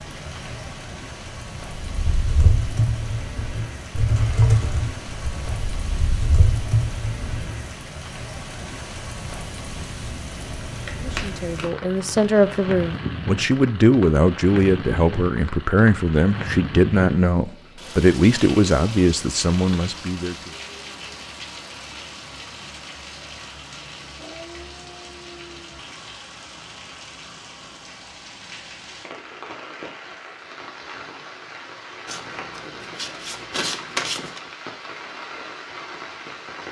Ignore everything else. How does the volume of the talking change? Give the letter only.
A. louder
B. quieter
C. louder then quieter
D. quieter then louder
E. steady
E.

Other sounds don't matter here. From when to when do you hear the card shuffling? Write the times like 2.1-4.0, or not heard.
10.4-12.8, 32.0-34.4.